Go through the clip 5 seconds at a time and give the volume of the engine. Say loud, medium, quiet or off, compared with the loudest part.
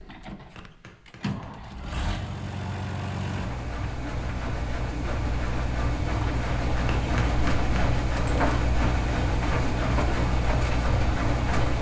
medium, loud, loud.